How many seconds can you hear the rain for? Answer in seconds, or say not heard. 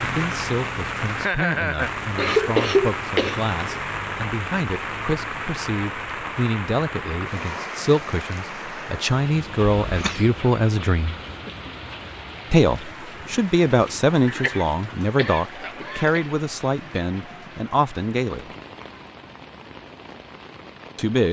21 s.